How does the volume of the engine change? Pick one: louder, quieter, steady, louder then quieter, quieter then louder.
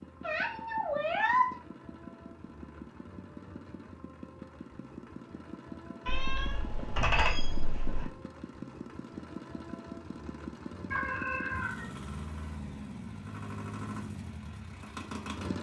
louder.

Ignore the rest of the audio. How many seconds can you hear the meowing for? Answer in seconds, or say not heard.
4 s.